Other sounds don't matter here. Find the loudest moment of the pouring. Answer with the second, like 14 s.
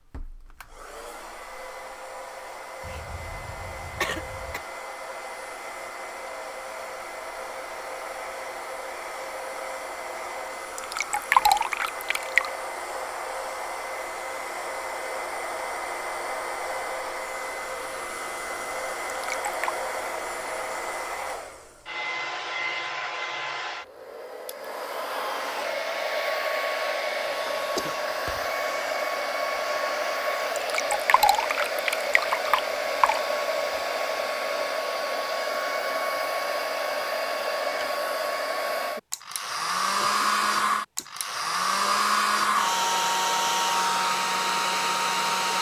11 s.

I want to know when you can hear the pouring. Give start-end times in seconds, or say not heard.
10.8-12.5, 19.1-19.8, 30.6-33.2.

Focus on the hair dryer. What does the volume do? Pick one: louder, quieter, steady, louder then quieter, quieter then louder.
louder.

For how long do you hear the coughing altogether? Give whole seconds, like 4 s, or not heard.
4 s.